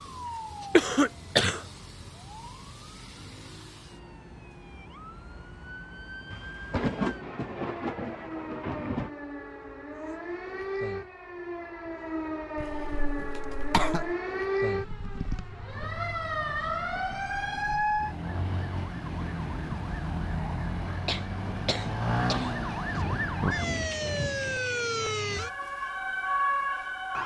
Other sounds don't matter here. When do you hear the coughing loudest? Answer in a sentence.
The volume of the coughing peaks at 1 second.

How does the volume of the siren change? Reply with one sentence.
The volume of the siren goes up.